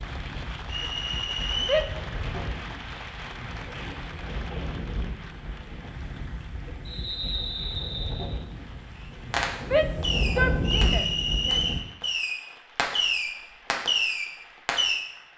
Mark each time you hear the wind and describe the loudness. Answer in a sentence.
The wind can be heard from 0.0 to 11.8 s, getting louder.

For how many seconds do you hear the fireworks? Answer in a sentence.
The fireworks can be heard for 6 seconds in total.